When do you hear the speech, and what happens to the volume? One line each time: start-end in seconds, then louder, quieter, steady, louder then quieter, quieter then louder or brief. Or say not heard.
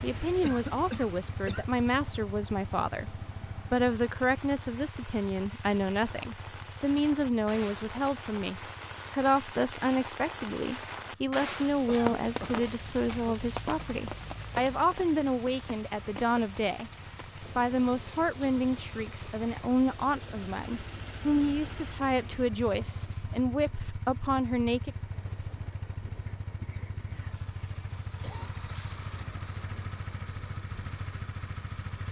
0.0-16.9 steady
17.6-24.9 steady.